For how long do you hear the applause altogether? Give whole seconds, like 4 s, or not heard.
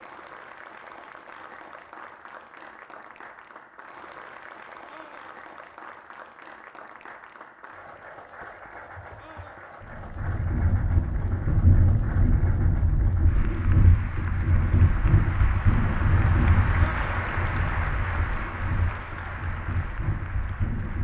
21 s.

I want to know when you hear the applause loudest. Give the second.
17 s.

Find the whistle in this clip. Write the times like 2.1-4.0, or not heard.
not heard.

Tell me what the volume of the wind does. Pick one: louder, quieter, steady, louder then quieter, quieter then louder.
quieter.